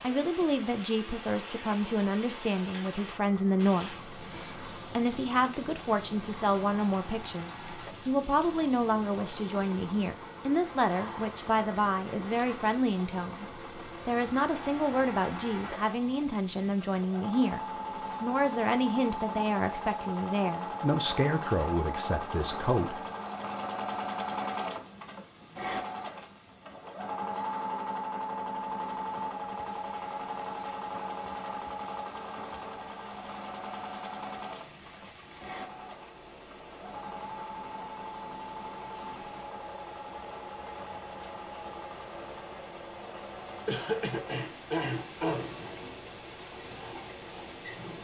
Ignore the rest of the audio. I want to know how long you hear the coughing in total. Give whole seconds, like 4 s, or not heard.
2 s.